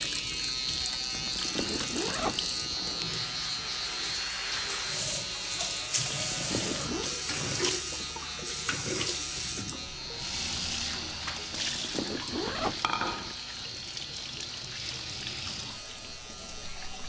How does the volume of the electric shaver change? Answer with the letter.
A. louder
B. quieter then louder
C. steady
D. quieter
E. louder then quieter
D.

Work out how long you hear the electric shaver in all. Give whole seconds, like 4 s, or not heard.
17 s.